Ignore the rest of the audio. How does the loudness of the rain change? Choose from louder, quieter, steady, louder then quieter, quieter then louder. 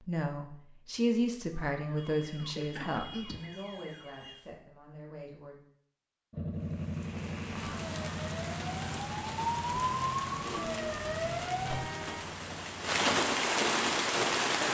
louder.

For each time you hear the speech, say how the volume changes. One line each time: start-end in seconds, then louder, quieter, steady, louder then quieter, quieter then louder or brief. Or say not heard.
0.0-5.6 quieter.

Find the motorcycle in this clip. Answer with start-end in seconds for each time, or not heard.
6.3-13.0.